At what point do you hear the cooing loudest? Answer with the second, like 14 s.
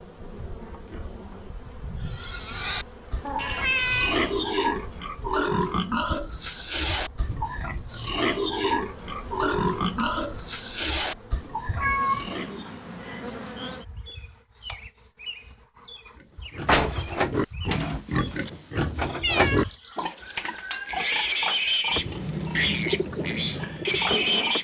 23 s.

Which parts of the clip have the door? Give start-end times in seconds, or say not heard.
16.6-18.5.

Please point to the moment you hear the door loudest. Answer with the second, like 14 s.
17 s.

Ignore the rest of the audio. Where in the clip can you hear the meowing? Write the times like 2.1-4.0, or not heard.
3.2-4.2, 11.8-13.3, 19.2-19.6.